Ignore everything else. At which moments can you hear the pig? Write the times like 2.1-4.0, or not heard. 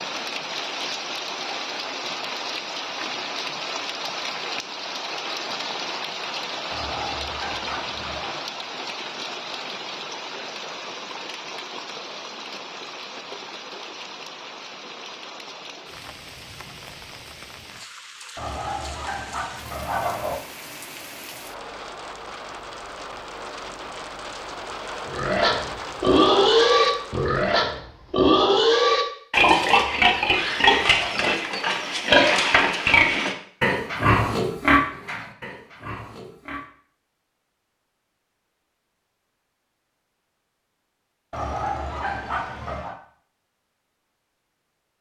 25.1-36.6.